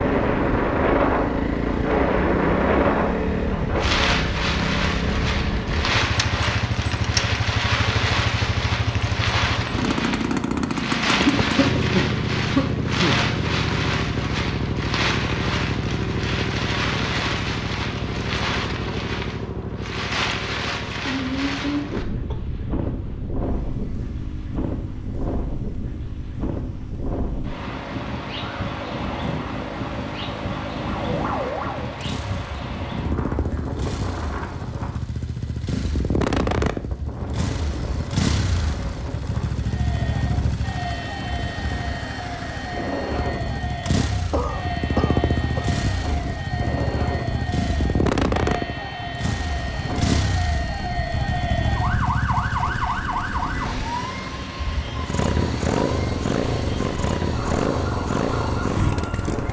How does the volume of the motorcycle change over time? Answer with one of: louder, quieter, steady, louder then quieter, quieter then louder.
quieter then louder.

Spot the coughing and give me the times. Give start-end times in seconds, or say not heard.
11.2-13.2, 21.1-22.4, 44.3-45.6.